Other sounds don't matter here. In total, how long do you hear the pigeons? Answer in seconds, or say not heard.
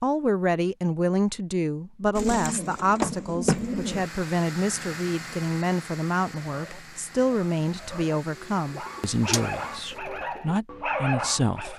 4 s.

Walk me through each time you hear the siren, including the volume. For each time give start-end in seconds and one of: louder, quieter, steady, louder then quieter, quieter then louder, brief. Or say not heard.
not heard.